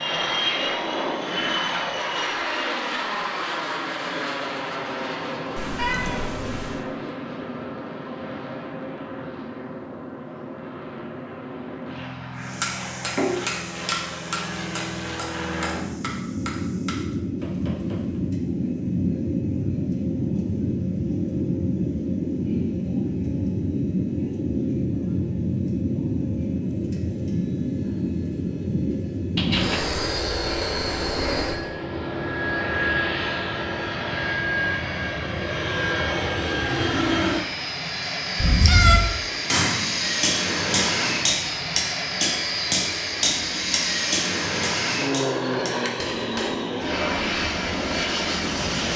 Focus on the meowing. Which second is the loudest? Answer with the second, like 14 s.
39 s.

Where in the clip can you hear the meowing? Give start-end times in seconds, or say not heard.
5.5-6.8, 29.4-30.1, 38.4-39.0.